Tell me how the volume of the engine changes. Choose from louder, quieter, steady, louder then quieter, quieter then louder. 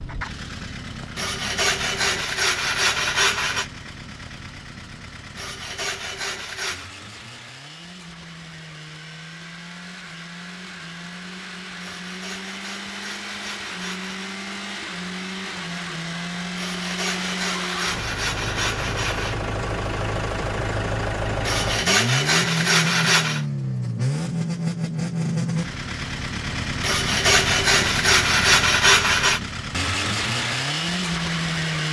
louder.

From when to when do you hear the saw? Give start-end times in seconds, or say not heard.
1.1-3.6, 5.3-6.9, 11.9-14.2, 16.6-19.4, 21.4-23.4, 26.8-29.4.